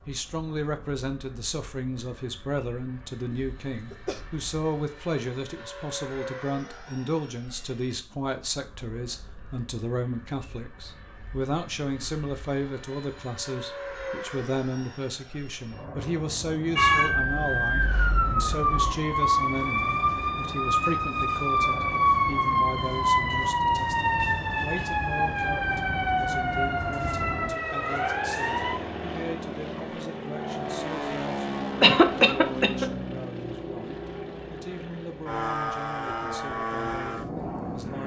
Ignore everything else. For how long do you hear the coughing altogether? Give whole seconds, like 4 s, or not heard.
2 s.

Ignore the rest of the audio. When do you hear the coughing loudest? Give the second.
32 s.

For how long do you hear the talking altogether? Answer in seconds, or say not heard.
38 s.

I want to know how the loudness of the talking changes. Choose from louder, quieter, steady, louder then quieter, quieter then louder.
quieter.